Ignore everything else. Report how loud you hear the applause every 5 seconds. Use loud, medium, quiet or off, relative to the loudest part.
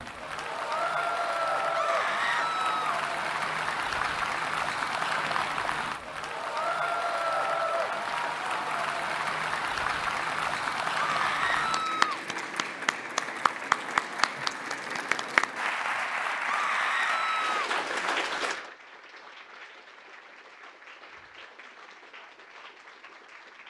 loud, loud, loud, loud, quiet.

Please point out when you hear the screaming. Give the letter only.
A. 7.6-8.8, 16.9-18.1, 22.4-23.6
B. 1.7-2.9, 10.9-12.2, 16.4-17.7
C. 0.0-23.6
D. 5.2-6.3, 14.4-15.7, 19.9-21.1
B.